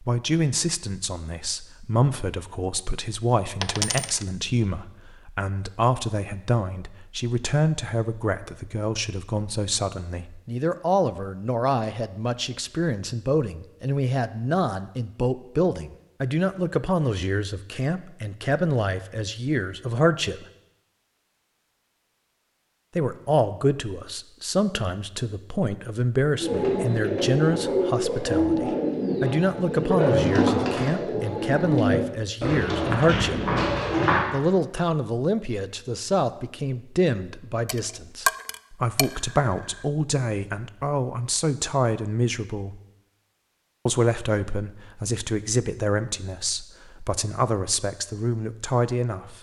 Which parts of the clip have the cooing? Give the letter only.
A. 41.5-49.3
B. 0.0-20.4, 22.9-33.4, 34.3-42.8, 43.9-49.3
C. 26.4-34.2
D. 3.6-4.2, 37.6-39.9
C.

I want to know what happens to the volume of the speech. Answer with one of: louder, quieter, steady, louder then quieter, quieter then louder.
steady.